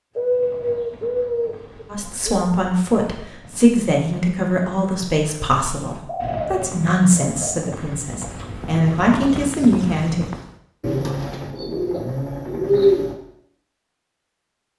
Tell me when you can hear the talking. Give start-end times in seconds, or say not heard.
1.9-10.2.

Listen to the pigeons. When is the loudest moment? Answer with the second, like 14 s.
13 s.